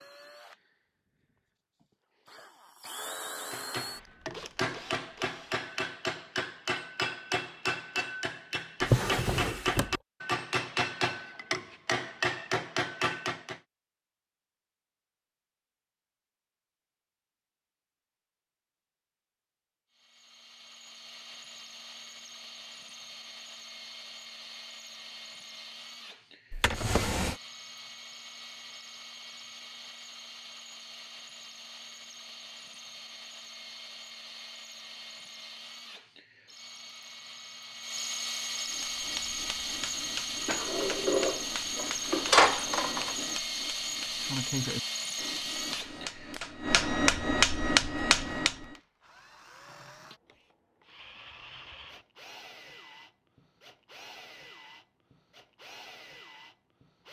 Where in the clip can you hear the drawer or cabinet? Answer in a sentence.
The drawer or cabinet can be heard from 8.8 to 9.9 s, from 26.5 to 27.4 s and from 40.5 to 43.1 s.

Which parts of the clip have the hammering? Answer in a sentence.
The hammering can be heard from 3.5 to 13.6 s and from 38.6 to 48.6 s.